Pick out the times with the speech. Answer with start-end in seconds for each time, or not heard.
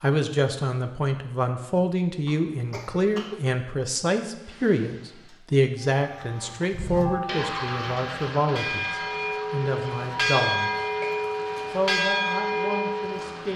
0.0-10.9, 11.7-13.5.